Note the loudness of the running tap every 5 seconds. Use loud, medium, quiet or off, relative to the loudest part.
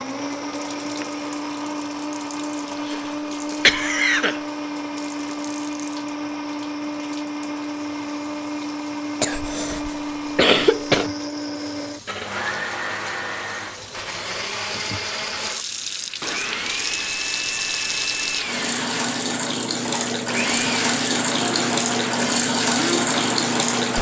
quiet, quiet, quiet, medium, loud.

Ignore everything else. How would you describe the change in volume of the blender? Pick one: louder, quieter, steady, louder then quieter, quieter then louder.
steady.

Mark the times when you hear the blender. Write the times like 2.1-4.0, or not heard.
0.0-23.9.